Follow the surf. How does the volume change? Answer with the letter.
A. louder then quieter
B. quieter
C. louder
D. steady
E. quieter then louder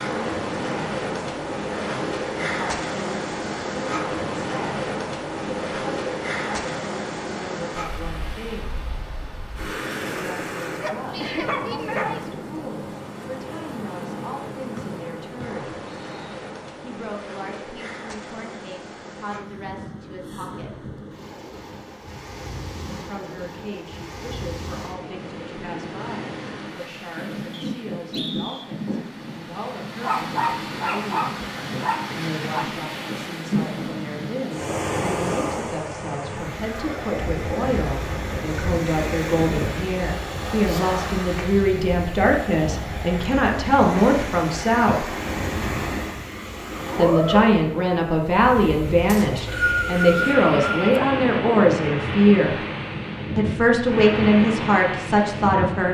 E.